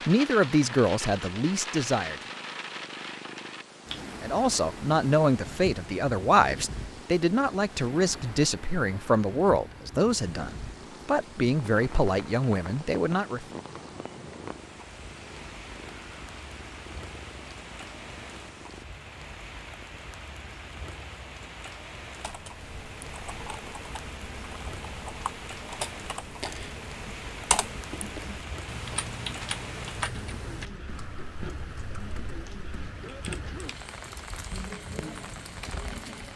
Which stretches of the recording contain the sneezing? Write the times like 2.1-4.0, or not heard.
33.0-33.8.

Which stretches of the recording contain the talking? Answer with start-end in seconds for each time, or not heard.
0.1-2.2, 4.2-13.4.